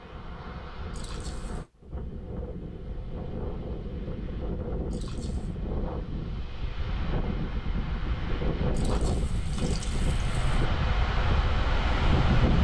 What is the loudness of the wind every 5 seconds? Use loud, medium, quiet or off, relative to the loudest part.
medium, medium, loud.